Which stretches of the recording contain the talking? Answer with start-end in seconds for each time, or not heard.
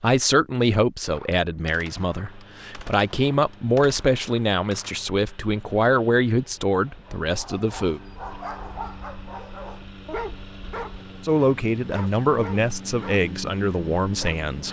0.0-8.0, 11.2-14.6.